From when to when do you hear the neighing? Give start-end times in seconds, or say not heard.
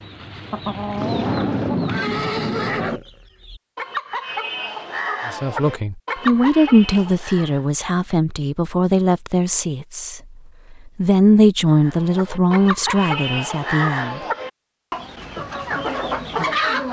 0.9-3.0.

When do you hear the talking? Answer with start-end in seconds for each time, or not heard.
5.2-10.2, 10.8-14.2.